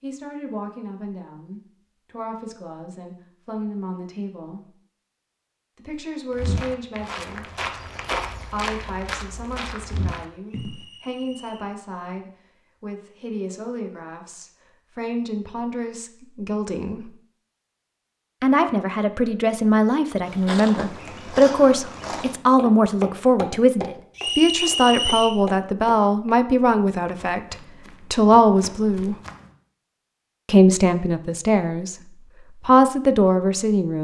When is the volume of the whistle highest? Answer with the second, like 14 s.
25 s.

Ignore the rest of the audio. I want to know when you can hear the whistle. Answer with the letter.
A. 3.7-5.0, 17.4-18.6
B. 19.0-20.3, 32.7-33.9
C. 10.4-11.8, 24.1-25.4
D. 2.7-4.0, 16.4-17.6
C.